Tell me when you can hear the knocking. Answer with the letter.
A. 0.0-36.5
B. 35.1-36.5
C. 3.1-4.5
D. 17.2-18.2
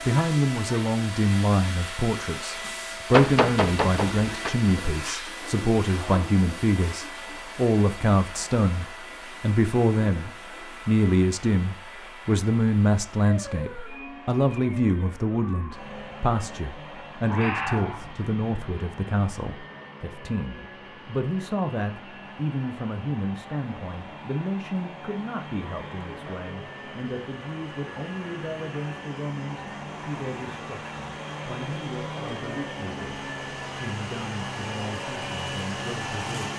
C.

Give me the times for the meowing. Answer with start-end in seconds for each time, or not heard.
17.2-18.2.